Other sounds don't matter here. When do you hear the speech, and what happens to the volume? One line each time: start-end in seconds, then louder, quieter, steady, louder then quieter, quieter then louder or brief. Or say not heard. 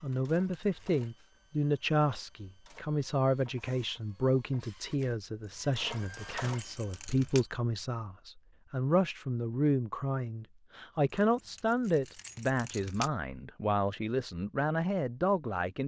0.0-15.8 steady.